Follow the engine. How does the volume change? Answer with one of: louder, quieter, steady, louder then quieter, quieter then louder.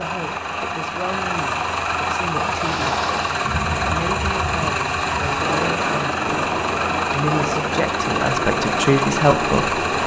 steady.